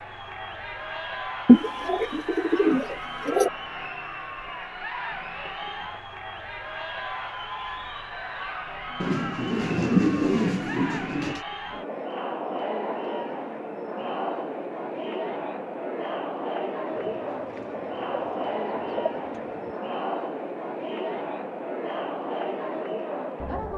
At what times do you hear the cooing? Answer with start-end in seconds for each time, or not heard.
1.4-3.5, 9.0-11.4, 16.9-19.8.